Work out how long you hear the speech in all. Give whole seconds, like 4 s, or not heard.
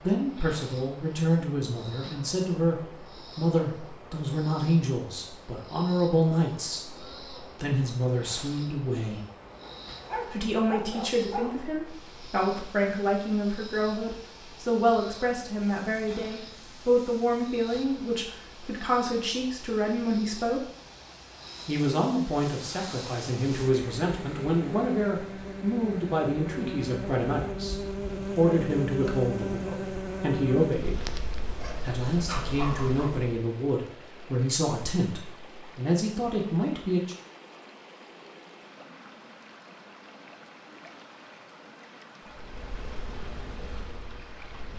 34 s.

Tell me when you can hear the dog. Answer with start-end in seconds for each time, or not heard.
9.6-11.7, 31.4-33.1.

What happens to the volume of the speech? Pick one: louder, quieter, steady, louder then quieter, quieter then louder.
steady.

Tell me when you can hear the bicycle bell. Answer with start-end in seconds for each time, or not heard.
not heard.